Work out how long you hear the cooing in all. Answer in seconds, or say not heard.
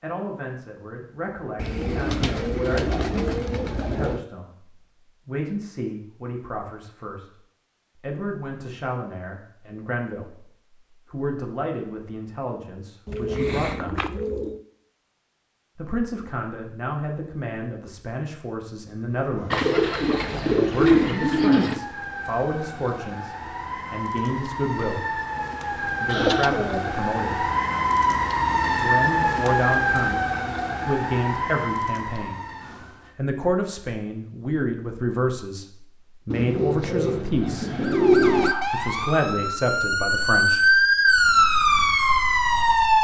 10 s.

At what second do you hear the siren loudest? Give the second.
41 s.